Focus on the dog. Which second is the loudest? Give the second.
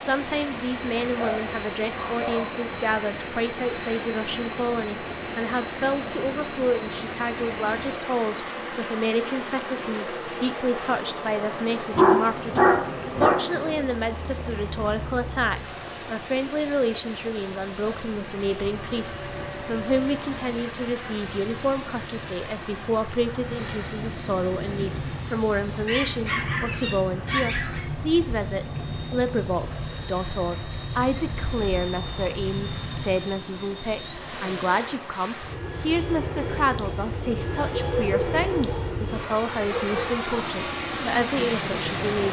12 s.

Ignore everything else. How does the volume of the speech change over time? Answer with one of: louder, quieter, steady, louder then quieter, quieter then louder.
steady.